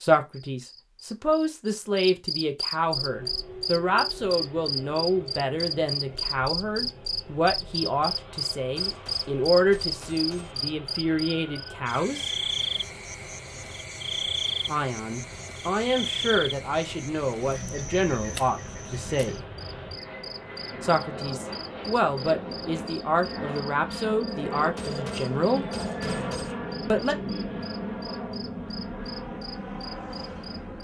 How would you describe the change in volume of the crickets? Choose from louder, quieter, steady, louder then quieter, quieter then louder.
quieter.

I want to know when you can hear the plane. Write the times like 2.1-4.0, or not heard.
2.8-30.7.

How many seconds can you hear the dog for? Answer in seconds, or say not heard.
not heard.